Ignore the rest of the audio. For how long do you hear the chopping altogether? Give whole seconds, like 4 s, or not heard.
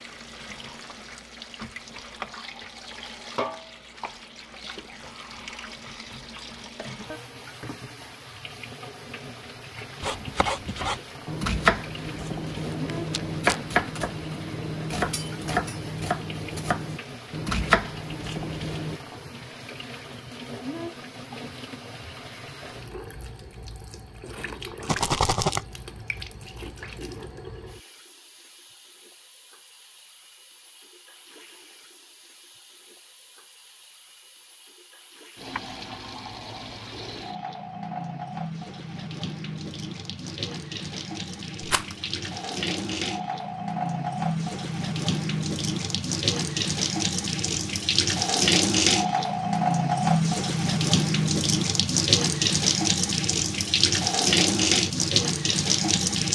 9 s.